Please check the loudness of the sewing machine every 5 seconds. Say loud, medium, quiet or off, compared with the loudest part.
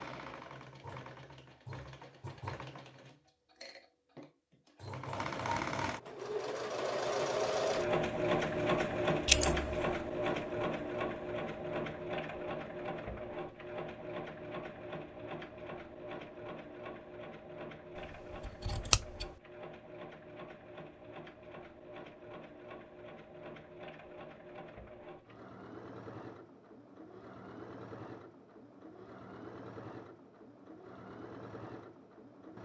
quiet, loud, medium, quiet, quiet, quiet, quiet.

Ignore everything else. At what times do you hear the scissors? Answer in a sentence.
You can hear the scissors from 9.2 to 9.8 s and from 18.4 to 19.2 s.